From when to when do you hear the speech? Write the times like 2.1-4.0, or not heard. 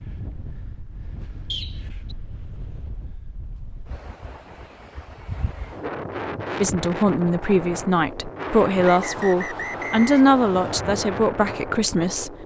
6.6-12.4.